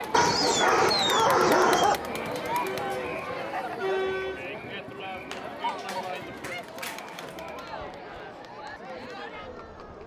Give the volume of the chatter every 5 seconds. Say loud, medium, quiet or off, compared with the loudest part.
loud, medium.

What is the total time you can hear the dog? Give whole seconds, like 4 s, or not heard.
4 s.